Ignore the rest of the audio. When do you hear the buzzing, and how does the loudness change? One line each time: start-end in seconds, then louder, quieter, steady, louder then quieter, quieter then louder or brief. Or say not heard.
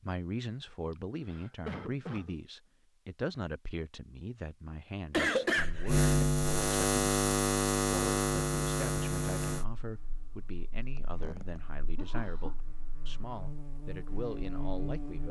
5.7-15.2 quieter then louder.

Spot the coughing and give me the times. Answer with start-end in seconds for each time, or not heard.
0.9-2.4, 5.1-6.1, 10.9-12.6.